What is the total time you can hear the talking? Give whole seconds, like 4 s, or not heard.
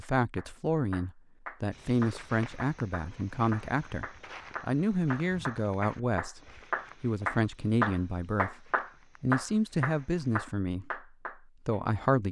11 s.